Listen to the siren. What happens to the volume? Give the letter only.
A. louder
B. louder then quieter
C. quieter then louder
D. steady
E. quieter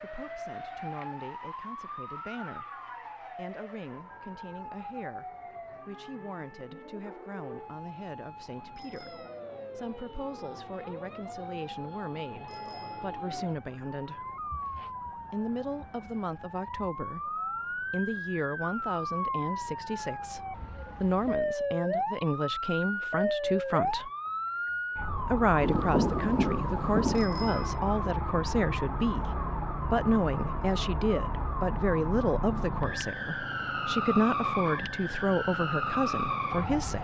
A.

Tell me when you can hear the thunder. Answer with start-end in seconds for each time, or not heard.
25.6-27.2.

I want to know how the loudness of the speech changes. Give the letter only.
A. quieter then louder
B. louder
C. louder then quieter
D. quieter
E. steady
B.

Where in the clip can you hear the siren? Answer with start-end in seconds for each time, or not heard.
0.0-36.9.